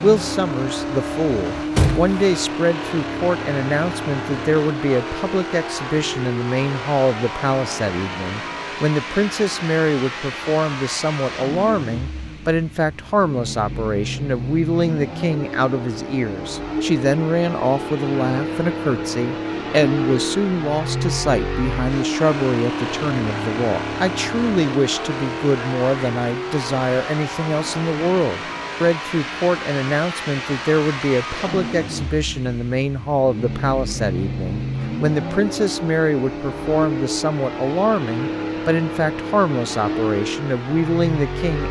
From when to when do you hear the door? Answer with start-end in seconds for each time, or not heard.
1.4-2.4.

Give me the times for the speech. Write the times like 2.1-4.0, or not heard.
0.0-41.6.